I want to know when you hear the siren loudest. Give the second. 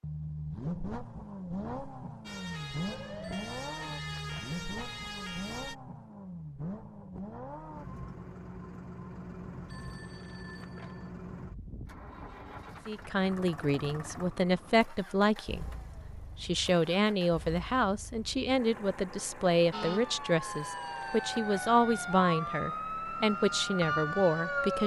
24 s.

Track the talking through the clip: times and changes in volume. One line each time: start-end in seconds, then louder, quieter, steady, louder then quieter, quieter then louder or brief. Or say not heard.
12.8-24.8 steady.